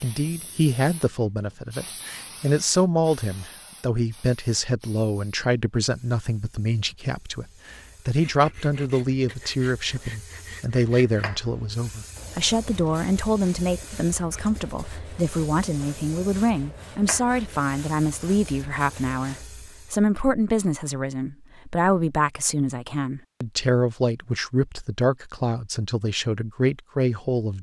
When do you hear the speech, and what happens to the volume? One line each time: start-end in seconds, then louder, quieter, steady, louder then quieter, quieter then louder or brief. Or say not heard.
0.0-27.5 steady.